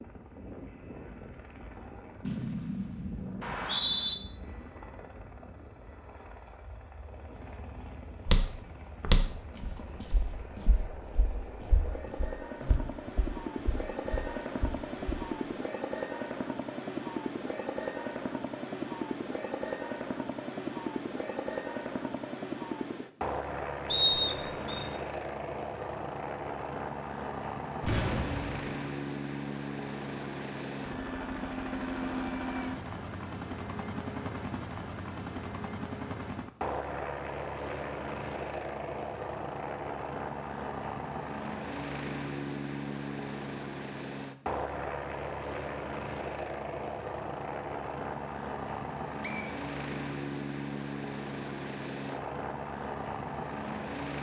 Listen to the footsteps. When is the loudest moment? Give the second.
9 s.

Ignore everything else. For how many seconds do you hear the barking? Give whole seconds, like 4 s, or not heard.
not heard.